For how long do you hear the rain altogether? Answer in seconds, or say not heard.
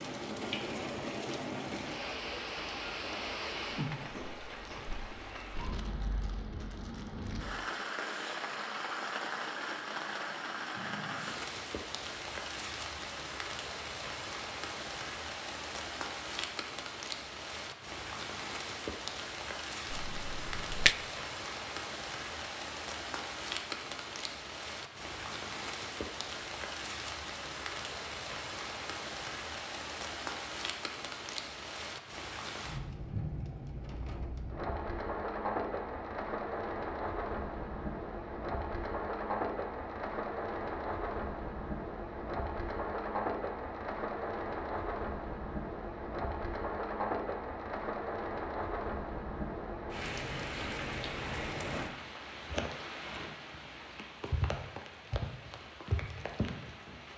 57 s.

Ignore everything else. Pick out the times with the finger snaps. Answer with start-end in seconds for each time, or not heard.
19.9-20.9.